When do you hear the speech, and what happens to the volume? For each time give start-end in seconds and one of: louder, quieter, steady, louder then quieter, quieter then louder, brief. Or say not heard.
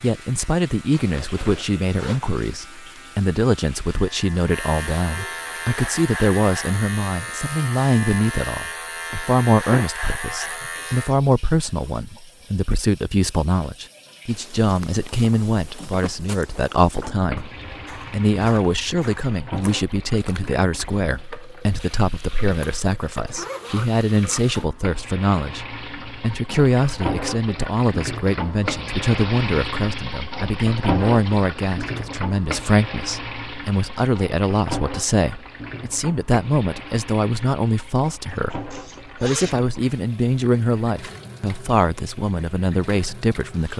0.0-43.7 steady.